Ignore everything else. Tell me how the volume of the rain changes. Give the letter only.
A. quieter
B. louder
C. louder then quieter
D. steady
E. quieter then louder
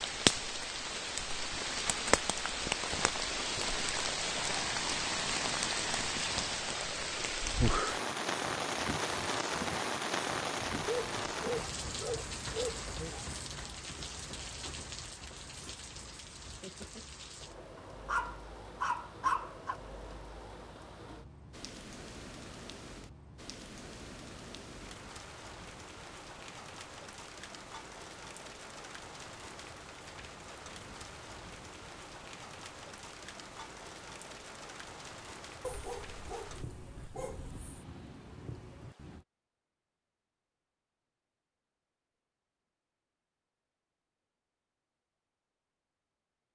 A.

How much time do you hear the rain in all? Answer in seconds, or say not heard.
39 s.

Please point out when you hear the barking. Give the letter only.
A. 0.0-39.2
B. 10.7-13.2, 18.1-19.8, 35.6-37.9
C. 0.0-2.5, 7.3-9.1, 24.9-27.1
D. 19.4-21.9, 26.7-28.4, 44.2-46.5
B.